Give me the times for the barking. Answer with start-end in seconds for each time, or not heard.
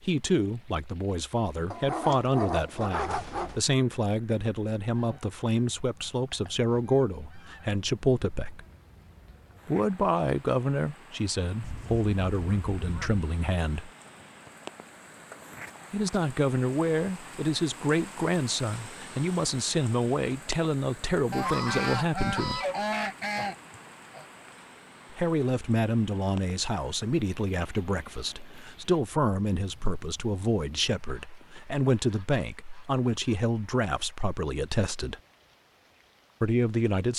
1.7-3.6.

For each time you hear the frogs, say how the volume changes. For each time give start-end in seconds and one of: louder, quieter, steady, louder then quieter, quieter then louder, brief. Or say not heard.
not heard.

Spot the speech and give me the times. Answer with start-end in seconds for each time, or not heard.
0.0-8.7, 9.7-13.9, 15.9-22.6, 25.1-35.2, 36.4-37.1.